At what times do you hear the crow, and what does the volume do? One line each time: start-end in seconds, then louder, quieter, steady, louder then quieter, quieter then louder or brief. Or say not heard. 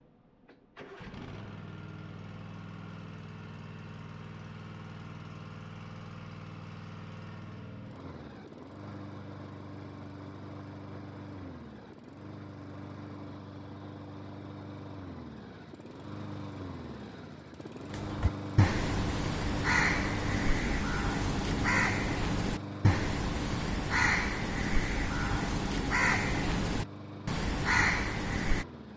17.9-28.6 steady.